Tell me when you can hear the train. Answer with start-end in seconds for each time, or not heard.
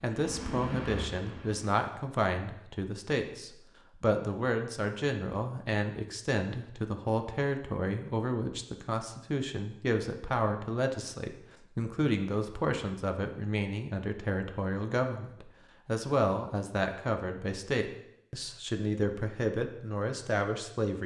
0.1-1.8.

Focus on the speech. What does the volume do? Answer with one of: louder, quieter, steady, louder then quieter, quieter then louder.
steady.